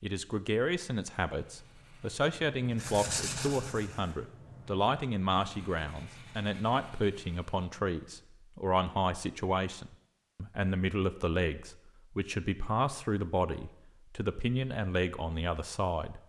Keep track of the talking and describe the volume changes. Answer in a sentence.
The loudness of the talking stays about the same.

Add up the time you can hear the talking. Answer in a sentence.
The talking can be heard for 16 seconds in total.